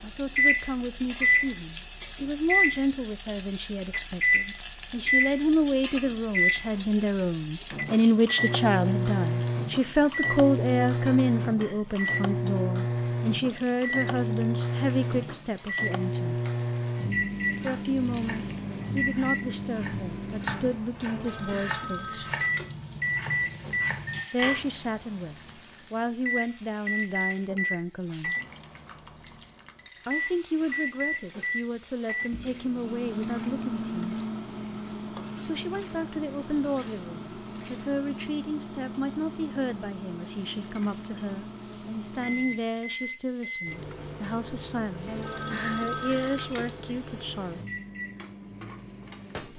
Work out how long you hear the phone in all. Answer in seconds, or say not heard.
3 s.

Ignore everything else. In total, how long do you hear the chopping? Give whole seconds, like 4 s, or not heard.
7 s.